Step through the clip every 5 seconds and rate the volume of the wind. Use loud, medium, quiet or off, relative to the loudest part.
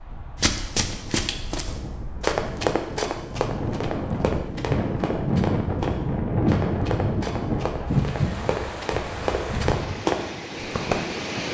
medium, loud, medium.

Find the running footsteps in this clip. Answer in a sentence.
The running footsteps can be heard from 0.4 to 11.1 s.